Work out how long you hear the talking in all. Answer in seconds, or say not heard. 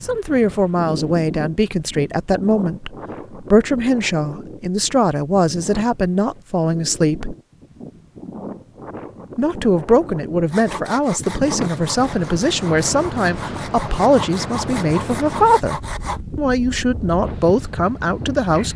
17 s.